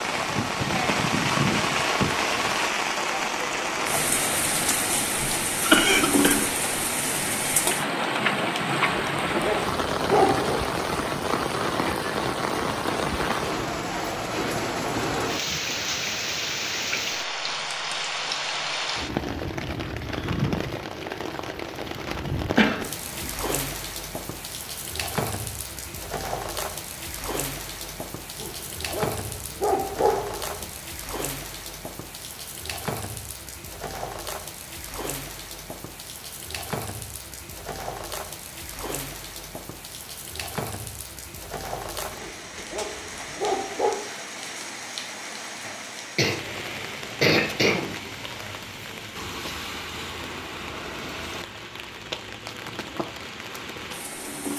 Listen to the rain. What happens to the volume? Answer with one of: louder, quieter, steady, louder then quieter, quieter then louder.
quieter.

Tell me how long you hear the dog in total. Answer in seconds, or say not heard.
6 s.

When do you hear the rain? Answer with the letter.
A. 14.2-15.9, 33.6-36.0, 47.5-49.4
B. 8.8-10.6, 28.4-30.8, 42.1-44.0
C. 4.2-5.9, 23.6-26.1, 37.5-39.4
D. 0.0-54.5
D.